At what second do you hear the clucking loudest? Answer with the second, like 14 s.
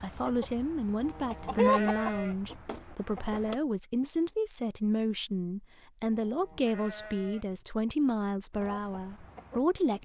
2 s.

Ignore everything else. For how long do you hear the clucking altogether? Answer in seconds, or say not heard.
5 s.